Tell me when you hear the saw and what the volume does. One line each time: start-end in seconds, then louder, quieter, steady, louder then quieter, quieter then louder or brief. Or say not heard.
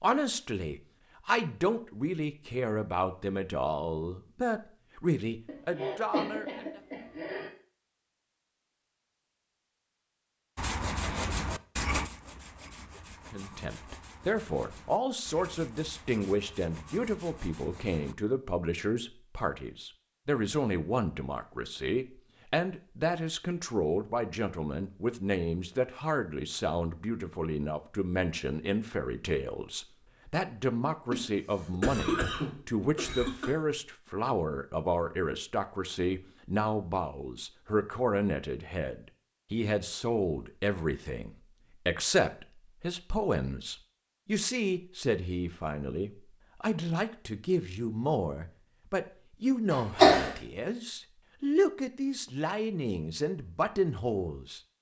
10.6-18.1 quieter.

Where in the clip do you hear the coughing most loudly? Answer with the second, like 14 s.
50 s.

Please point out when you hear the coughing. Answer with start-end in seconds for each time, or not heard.
5.5-7.5, 31.1-33.5, 49.7-50.3.